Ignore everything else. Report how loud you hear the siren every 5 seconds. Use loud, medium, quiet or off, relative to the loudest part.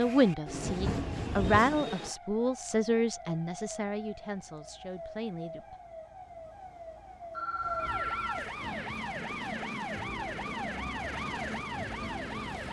medium, loud, loud.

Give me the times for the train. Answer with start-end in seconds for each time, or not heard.
0.0-2.1, 8.6-12.6.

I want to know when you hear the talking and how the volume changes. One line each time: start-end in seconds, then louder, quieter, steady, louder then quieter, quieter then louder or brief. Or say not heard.
0.0-5.8 louder then quieter.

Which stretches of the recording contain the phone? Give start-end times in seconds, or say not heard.
7.3-8.4.